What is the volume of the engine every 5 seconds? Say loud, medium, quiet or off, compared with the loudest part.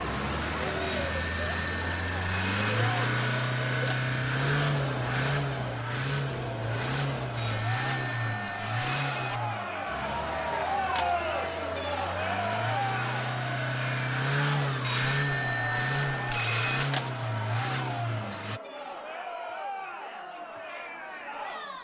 loud, loud, loud, loud, off.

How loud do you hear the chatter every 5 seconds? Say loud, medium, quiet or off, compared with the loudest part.
medium, medium, loud, medium, medium.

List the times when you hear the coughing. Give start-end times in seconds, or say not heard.
not heard.